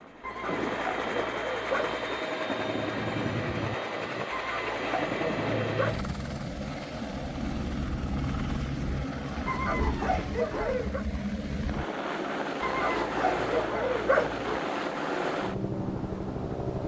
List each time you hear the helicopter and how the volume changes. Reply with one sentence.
The helicopter can be heard from 0.0 to 16.8 s, at a steady volume.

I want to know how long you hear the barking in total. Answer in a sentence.
The barking can be heard for 7 seconds in total.